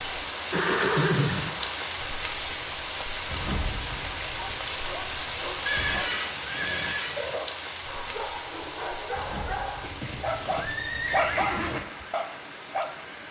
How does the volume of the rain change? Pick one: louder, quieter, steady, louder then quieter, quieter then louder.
quieter.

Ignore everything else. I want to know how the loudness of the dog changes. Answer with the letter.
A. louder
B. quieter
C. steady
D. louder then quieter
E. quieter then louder
A.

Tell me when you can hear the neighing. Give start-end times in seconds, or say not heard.
0.5-1.8, 5.7-7.2, 9.8-11.8.